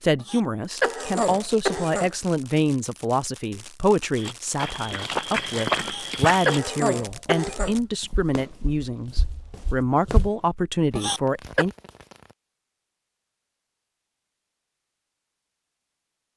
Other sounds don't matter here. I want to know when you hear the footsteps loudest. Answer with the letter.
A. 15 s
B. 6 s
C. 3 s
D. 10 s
B.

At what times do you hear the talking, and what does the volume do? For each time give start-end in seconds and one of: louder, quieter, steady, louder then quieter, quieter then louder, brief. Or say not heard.
0.0-11.7 steady.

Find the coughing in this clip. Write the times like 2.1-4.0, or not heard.
0.1-2.1, 5.8-7.8, 10.9-11.7.